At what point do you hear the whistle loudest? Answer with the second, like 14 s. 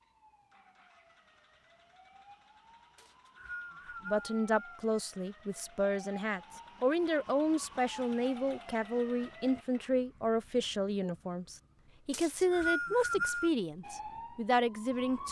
13 s.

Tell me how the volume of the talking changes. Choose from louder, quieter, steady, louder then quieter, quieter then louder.
steady.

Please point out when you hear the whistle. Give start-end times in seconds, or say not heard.
3.0-4.8, 12.1-13.5.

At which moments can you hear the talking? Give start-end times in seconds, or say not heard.
4.0-15.2.